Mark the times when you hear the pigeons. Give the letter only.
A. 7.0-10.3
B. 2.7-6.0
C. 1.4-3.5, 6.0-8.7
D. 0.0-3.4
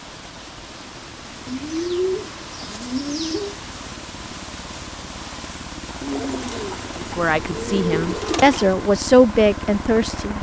C.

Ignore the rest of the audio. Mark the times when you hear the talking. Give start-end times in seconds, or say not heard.
7.0-10.3.